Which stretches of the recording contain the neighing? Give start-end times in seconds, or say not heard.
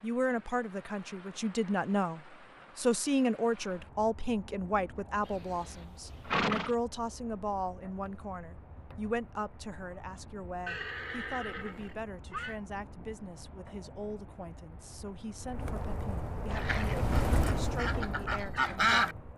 5.2-6.8, 10.7-12.6.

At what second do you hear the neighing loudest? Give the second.
6 s.